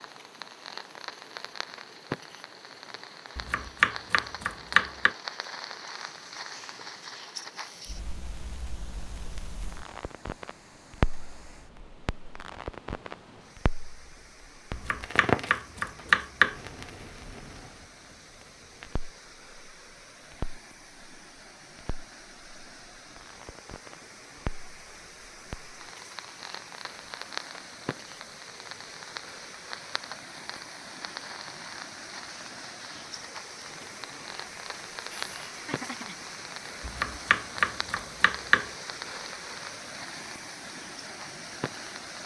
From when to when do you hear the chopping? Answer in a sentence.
You can hear the chopping from 3.4 to 5.2 s, from 14.7 to 16.6 s and from 36.8 to 38.7 s.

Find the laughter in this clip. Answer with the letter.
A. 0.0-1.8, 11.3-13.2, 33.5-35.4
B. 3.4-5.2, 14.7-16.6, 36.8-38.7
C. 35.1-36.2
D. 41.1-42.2
C.